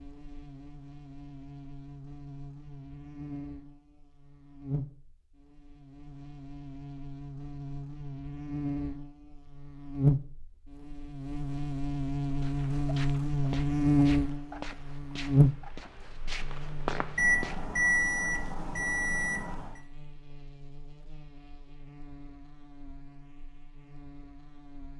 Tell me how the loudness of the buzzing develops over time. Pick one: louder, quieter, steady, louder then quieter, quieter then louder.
louder then quieter.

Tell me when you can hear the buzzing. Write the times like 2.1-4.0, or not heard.
0.0-24.9.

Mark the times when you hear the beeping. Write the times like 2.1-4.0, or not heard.
17.1-19.8.